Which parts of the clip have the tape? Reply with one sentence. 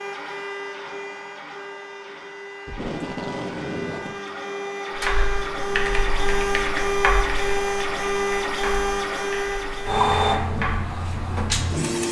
The tape can be heard from 2.6 to 4.2 s.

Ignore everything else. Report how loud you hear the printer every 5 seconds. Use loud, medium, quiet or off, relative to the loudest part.
medium, loud, loud.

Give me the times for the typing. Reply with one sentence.
You can hear the typing from 5.0 to 11.0 s.